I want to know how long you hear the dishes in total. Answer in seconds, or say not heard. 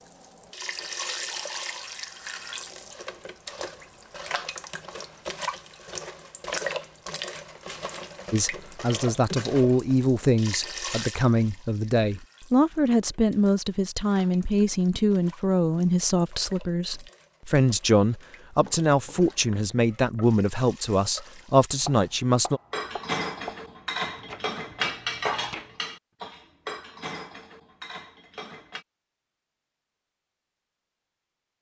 6 s.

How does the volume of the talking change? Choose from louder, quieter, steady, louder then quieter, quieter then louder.
steady.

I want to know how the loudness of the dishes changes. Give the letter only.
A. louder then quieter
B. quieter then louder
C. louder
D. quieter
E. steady
D.